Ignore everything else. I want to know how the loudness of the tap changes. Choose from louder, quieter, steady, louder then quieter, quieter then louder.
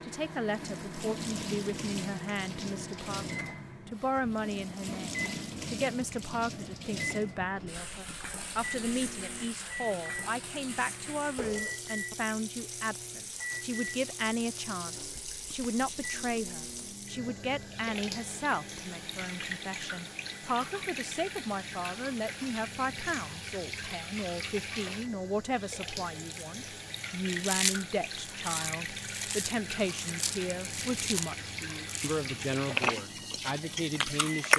steady.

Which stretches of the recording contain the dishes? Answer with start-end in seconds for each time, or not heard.
not heard.